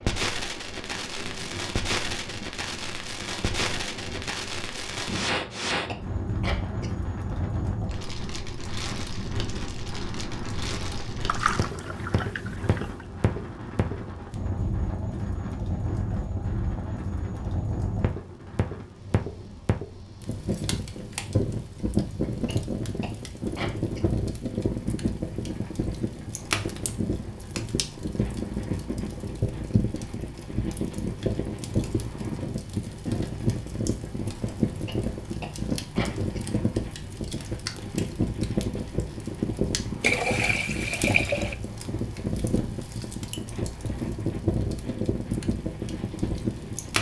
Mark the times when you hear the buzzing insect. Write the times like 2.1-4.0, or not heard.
not heard.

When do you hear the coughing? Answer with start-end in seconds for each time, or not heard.
5.3-6.9, 22.4-24.1, 34.6-36.5.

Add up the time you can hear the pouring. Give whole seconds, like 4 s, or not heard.
3 s.